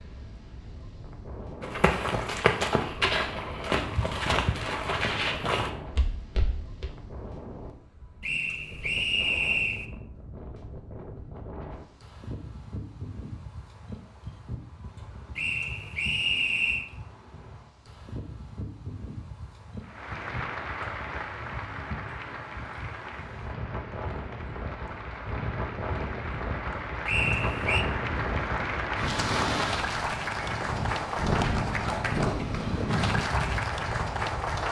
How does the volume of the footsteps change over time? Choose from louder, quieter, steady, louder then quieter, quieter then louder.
quieter.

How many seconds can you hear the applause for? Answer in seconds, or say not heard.
15 s.